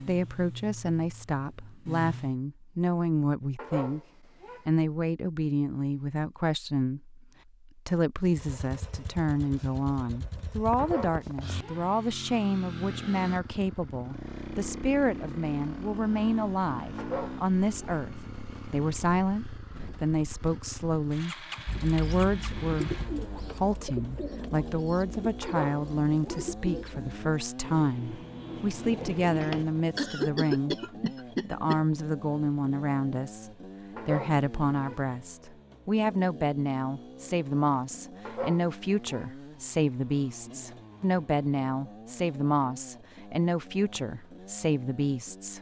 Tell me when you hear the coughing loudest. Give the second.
30 s.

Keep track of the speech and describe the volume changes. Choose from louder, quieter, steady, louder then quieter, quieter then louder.
steady.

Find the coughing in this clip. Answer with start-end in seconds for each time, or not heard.
29.4-31.8.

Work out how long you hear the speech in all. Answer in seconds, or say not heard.
44 s.